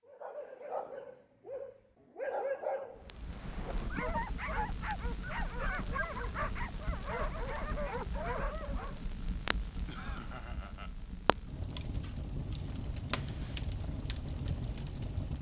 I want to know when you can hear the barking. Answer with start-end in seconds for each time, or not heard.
0.1-9.0.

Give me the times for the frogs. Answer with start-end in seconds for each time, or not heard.
not heard.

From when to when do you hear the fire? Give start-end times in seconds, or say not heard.
3.0-15.3.